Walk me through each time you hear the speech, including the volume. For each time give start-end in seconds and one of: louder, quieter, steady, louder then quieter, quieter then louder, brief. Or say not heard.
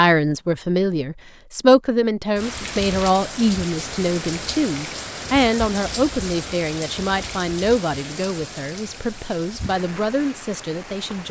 0.0-11.2 quieter.